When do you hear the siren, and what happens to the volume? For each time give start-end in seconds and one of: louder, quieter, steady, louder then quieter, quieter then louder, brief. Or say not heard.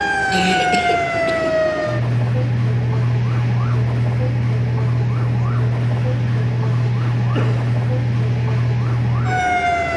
0.0-9.9 steady.